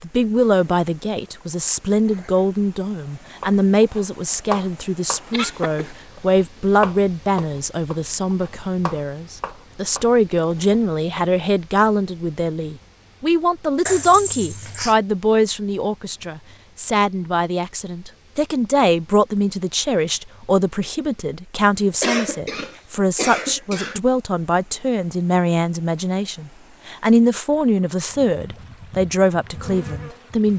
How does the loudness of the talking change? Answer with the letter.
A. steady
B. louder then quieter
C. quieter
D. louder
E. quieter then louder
A.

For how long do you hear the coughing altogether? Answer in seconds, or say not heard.
4 s.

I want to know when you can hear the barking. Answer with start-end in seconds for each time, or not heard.
not heard.